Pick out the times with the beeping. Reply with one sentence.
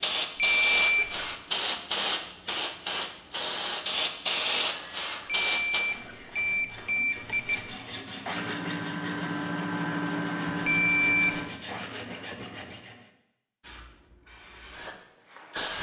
You can hear the beeping from 0.6 to 1.4 s, from 5.5 to 7.7 s and from 10.7 to 11.4 s.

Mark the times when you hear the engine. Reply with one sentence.
You can hear the engine from 8.2 to 11.6 s.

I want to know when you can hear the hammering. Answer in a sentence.
The hammering can't be heard in this clip.